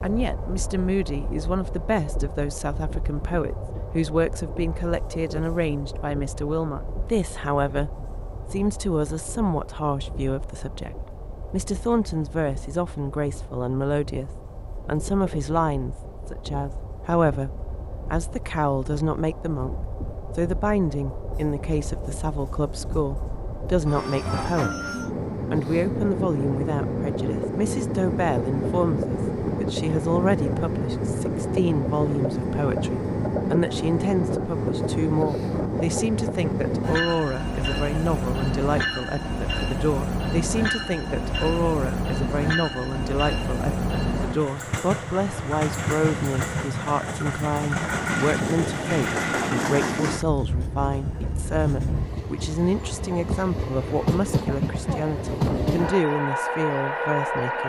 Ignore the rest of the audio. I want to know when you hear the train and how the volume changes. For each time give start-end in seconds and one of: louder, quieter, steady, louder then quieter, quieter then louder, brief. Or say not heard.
0.0-57.6 louder.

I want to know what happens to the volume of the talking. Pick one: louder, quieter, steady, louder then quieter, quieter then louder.
steady.